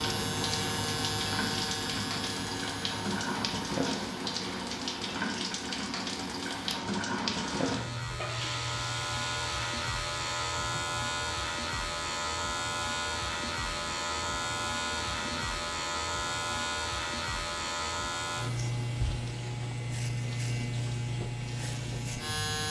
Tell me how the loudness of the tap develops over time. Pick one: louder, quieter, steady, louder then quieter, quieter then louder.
quieter.